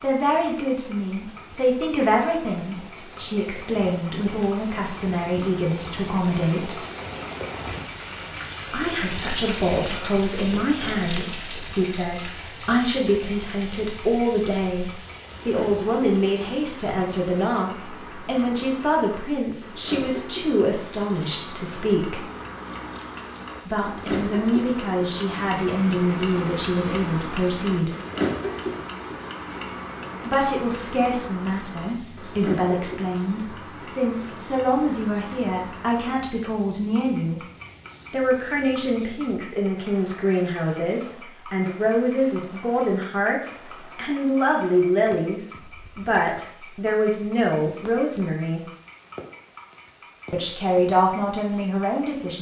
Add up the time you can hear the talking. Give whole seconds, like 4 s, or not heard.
44 s.